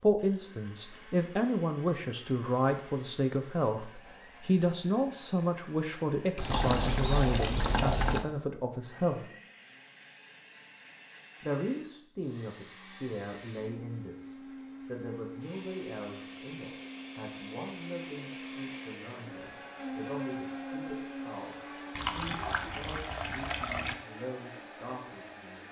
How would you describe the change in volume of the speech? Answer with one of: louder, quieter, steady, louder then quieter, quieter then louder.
quieter.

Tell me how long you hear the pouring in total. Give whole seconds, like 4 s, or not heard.
4 s.